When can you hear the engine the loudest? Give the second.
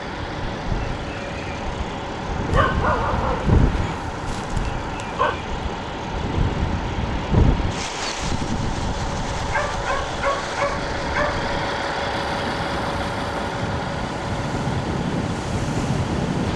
12 s.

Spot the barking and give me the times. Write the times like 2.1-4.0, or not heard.
2.5-5.4, 9.5-11.4.